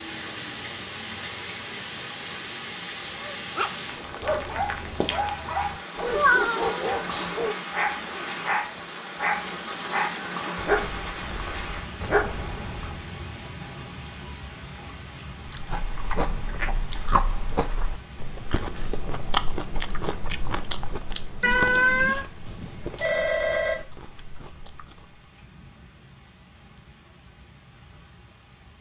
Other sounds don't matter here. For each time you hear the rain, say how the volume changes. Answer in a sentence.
You can hear the rain from 0.0 to 28.7 s, getting quieter.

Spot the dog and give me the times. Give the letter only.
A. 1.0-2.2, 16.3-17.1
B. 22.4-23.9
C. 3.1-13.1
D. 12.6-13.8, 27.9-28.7
C.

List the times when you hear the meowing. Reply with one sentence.
The meowing can be heard from 6.1 to 7.3 s and from 21.4 to 22.2 s.